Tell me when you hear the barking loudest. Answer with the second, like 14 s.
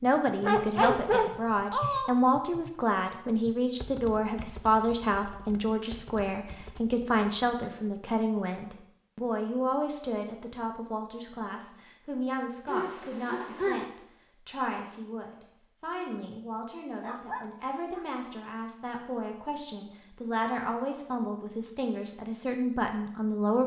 1 s.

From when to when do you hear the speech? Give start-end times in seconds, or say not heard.
0.0-23.6.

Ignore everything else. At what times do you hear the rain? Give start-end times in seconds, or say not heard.
not heard.